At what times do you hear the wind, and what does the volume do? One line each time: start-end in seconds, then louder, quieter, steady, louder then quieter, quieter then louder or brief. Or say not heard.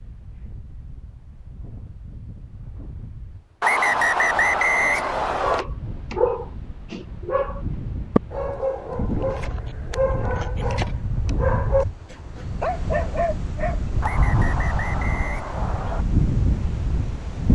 0.0-17.5 louder.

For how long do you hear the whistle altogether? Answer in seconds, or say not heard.
4 s.